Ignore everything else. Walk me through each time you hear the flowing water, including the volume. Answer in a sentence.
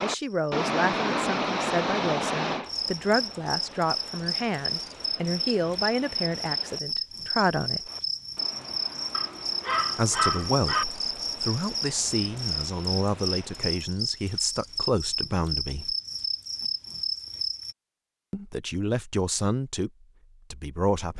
You can hear the flowing water from 0.0 to 13.9 s, getting quieter.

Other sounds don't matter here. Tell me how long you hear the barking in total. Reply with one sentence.
You can hear the barking for 2 seconds altogether.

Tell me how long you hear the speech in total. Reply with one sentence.
You can hear the speech for 16 seconds altogether.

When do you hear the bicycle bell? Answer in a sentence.
The bicycle bell can't be heard in this clip.